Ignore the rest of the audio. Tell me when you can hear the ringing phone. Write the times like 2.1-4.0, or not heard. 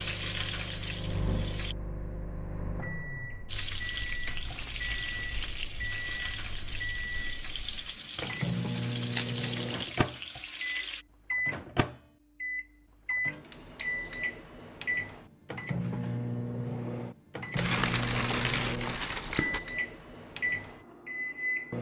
not heard.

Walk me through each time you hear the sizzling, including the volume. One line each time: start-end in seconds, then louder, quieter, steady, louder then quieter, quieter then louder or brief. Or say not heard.
0.0-1.8 brief
3.5-11.1 steady.